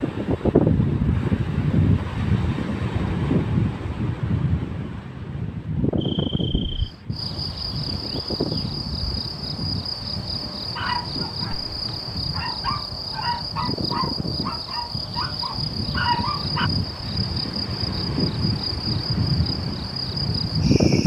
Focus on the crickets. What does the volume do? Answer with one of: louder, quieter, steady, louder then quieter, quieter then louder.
steady.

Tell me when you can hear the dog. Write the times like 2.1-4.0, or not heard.
10.8-16.7.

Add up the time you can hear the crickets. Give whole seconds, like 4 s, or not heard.
15 s.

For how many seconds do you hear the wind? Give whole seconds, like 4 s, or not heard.
21 s.